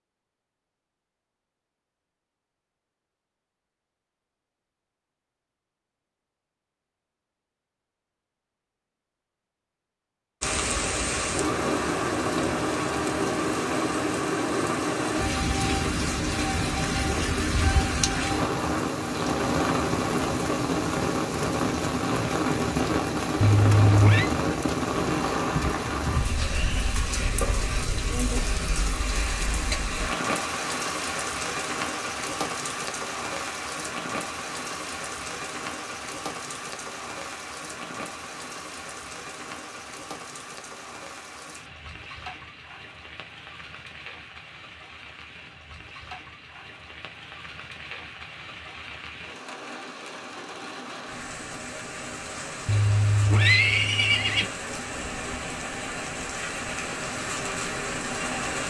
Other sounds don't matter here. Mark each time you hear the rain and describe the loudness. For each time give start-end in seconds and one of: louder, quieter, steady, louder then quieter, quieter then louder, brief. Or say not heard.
10.4-58.6 quieter then louder.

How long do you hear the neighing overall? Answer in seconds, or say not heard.
3 s.